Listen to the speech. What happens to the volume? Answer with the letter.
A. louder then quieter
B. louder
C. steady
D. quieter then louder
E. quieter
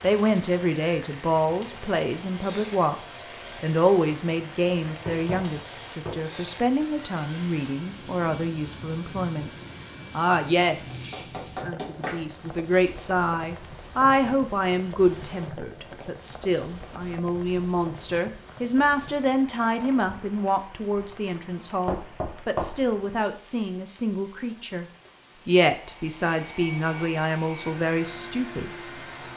C.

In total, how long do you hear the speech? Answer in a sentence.
The speech can be heard for 28 seconds in total.